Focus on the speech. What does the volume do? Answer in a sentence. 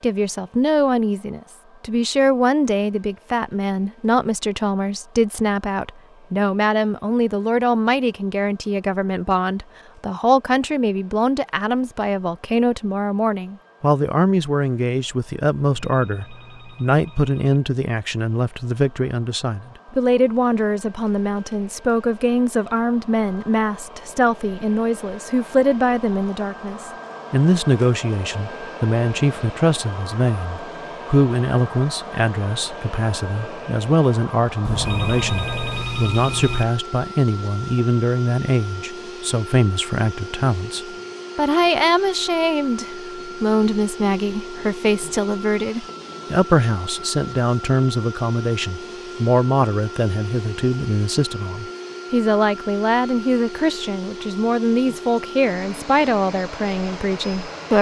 The loudness of the speech stays about the same.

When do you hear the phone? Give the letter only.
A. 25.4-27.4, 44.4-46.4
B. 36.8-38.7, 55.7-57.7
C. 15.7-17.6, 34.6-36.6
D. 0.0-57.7
C.